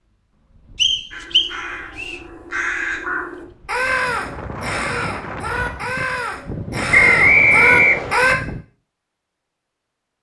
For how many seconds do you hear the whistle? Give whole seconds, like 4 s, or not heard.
3 s.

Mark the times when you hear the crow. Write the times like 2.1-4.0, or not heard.
1.1-8.3.